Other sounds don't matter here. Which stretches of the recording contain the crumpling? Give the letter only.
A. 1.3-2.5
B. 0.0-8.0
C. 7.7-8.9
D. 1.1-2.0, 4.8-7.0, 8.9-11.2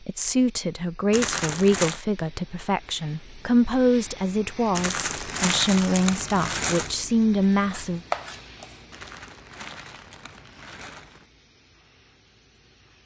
D.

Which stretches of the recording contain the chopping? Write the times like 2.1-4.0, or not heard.
7.7-8.9.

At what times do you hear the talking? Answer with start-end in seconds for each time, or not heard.
0.0-8.0.